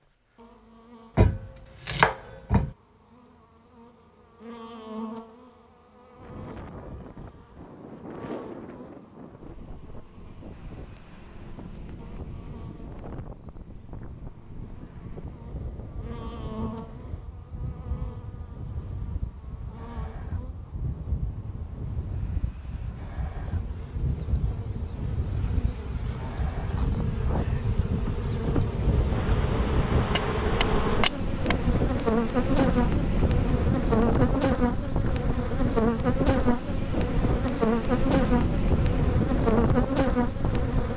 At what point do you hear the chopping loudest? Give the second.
2 s.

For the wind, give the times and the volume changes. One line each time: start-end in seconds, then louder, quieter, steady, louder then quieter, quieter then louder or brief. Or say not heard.
6.2-40.9 louder.